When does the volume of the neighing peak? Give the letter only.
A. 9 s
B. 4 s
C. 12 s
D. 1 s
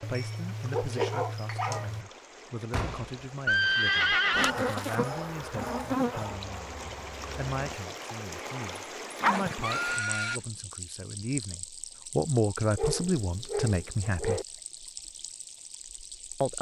B.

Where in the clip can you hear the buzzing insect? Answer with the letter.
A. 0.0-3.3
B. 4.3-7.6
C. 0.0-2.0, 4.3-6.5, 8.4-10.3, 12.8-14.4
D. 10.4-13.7
B.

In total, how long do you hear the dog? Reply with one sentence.
The dog can be heard for 8 seconds in total.